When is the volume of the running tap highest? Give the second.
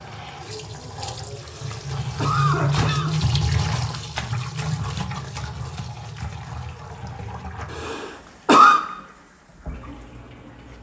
3 s.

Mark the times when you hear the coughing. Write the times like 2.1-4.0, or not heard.
1.4-3.1, 7.7-8.8.